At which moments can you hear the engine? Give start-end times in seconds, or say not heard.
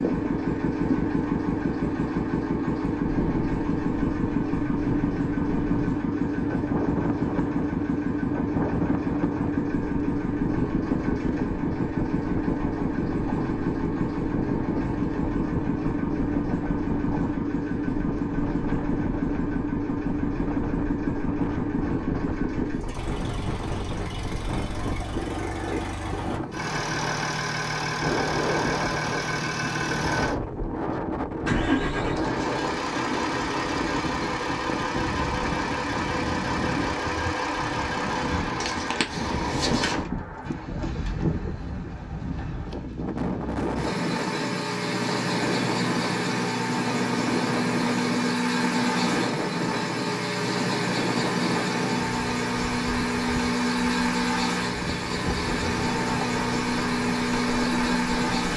0.0-58.5.